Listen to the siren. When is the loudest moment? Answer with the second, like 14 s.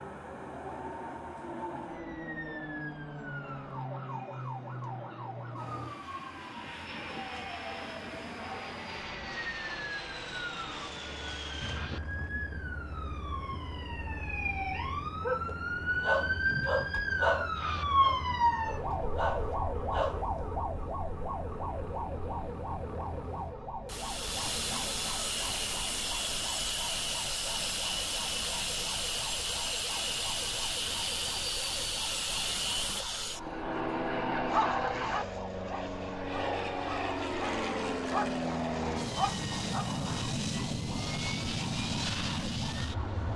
18 s.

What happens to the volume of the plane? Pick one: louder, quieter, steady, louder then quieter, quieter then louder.
louder.